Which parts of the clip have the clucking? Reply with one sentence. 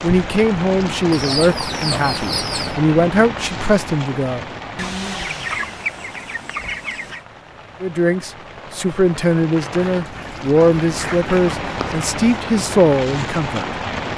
The clucking can be heard from 1.1 to 2.8 s, from 4.8 to 7.2 s and from 9.8 to 12.1 s.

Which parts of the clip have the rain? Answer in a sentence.
The rain can be heard from 0.0 to 14.1 s.